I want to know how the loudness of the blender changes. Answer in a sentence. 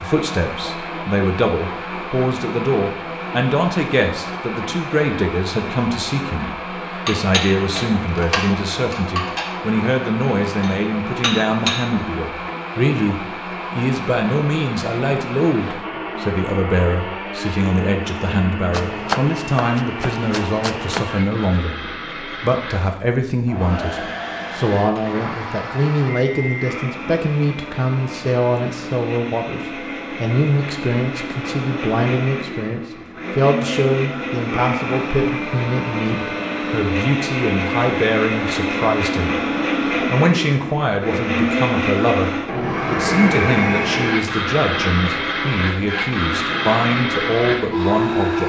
The volume of the blender goes up.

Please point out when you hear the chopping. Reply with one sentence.
You can hear the chopping from 18.7 to 21.1 s.